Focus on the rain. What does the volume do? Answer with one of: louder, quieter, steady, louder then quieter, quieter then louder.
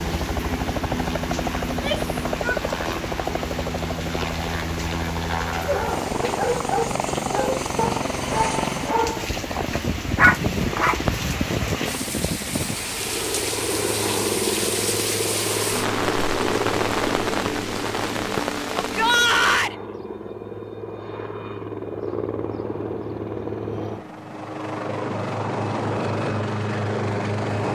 louder.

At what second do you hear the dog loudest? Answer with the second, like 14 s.
10 s.